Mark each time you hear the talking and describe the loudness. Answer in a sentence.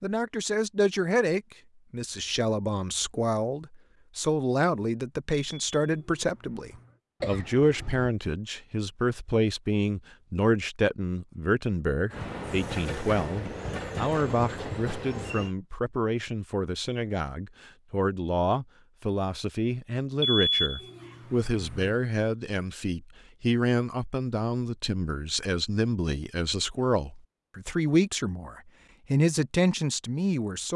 The talking can be heard from 0.0 to 30.7 s, at a steady volume.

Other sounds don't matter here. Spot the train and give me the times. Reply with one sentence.
You can hear the train from 12.1 to 15.6 s.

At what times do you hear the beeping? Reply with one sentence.
You can hear the beeping from 5.3 to 7.0 s and from 20.2 to 21.9 s.